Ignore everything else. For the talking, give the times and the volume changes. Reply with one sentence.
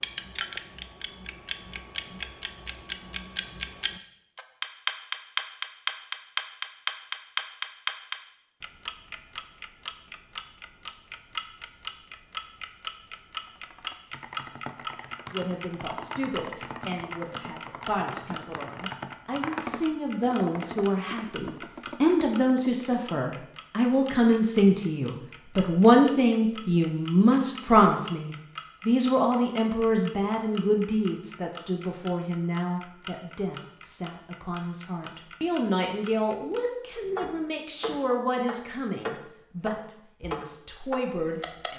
The talking can be heard from 15.3 to 41.7 s, getting louder then quieter.